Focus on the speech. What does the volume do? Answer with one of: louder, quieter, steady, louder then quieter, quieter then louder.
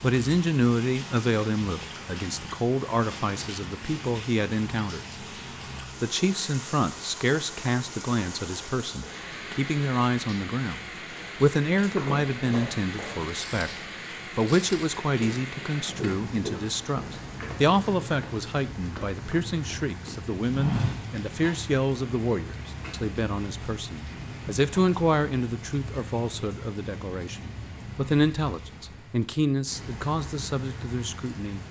steady.